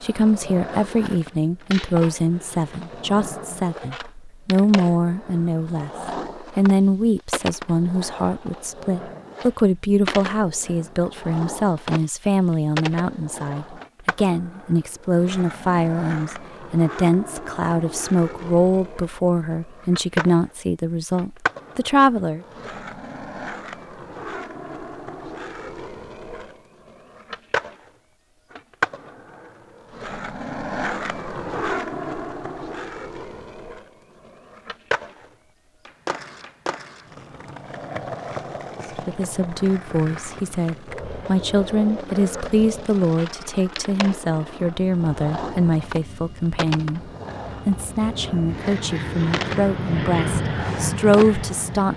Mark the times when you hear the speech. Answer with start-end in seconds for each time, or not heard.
0.0-22.4, 39.0-51.9.